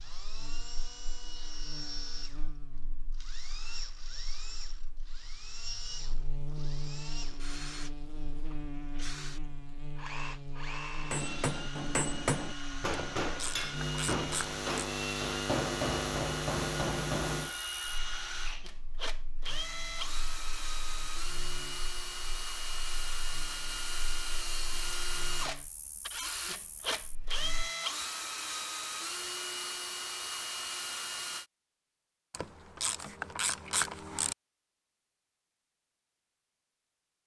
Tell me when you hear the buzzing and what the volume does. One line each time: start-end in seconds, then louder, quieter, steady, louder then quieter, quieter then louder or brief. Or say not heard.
0.0-27.7 louder then quieter.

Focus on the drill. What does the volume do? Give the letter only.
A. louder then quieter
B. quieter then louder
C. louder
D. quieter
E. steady
C.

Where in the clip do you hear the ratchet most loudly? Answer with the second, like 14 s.
34 s.